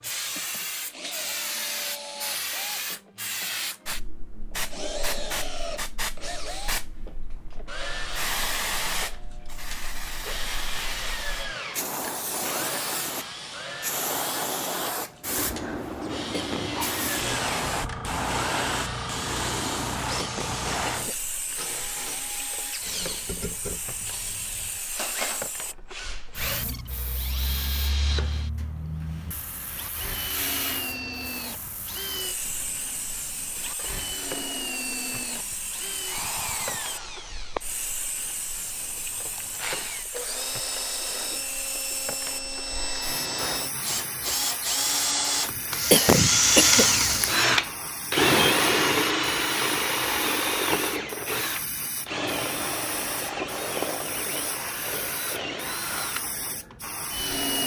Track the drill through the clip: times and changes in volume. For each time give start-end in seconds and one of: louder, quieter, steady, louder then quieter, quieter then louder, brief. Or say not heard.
0.0-57.6 louder.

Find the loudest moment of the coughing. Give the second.
46 s.